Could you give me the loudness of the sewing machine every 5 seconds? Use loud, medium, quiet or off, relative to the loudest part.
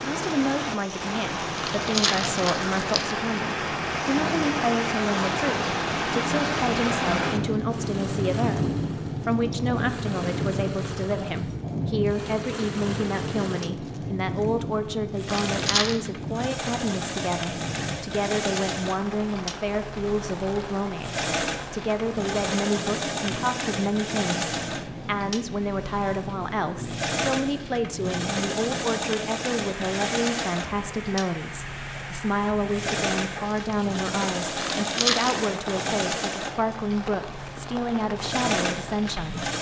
medium, medium, medium, loud, loud, loud, loud, loud.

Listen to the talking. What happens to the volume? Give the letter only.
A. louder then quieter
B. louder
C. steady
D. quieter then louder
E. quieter
C.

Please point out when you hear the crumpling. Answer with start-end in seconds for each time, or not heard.
1.6-3.2, 15.4-16.0, 34.6-35.4.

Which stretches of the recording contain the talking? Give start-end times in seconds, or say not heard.
0.0-39.4.